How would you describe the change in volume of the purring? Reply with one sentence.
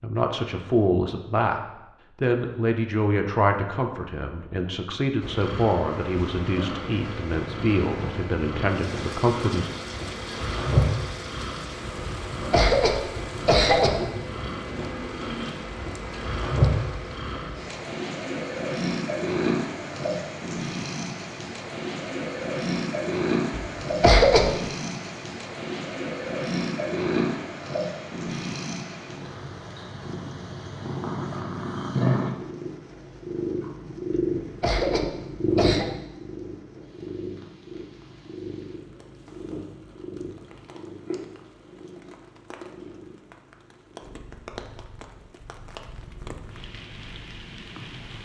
The loudness of the purring goes down.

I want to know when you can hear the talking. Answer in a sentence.
The talking can be heard from 0.0 to 1.6 s and from 2.2 to 9.7 s.